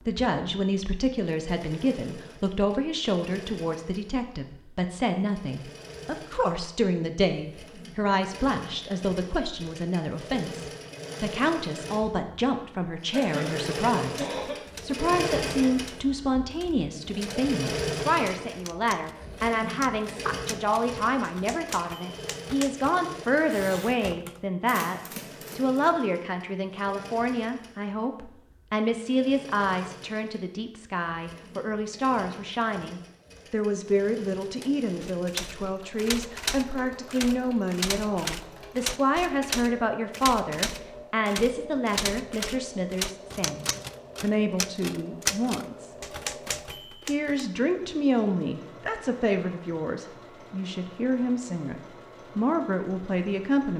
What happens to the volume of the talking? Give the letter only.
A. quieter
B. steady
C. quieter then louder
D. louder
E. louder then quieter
B.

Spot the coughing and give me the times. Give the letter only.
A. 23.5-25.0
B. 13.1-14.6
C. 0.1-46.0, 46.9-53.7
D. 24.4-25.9
B.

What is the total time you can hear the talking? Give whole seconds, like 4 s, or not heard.
53 s.